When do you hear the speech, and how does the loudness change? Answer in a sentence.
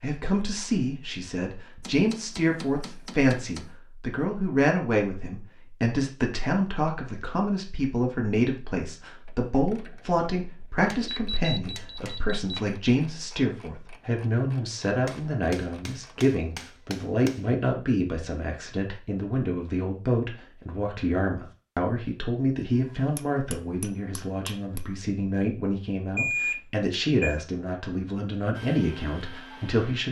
You can hear the speech from 0.0 to 30.0 s, at a steady volume.